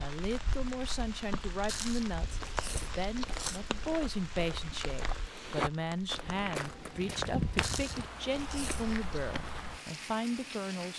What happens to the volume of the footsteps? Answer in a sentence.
The volume of the footsteps goes up, then down.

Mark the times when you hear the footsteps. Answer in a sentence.
You can hear the footsteps from 2.4 to 9.8 s.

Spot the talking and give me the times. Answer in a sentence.
The talking can be heard from 0.0 to 10.9 s.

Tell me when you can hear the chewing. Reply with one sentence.
You can hear the chewing from 1.6 to 3.8 s and from 7.6 to 9.2 s.